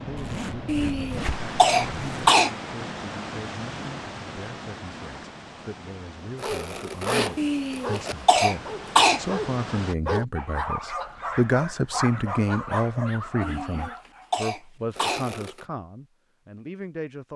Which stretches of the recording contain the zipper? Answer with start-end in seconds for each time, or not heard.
0.1-2.3, 6.3-8.2, 14.9-15.7.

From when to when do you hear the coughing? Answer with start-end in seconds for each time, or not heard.
0.7-2.5, 7.3-9.2, 13.4-15.2.